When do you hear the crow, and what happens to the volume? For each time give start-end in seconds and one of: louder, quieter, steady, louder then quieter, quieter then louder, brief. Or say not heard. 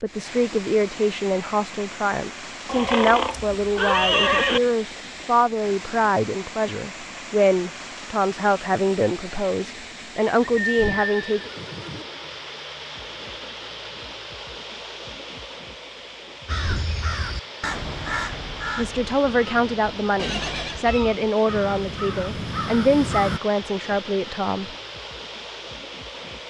16.4-23.4 quieter then louder.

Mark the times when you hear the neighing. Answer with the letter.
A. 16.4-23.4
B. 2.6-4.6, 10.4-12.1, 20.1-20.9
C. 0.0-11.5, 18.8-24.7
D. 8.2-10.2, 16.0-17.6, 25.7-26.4
B.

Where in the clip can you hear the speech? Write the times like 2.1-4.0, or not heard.
0.0-11.5, 18.8-24.7.